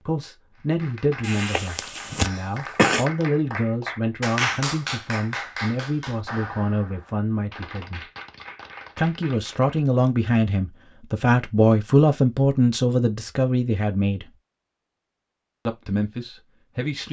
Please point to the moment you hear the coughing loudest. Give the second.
3 s.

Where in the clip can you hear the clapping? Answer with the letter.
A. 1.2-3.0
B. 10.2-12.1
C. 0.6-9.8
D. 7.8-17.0
C.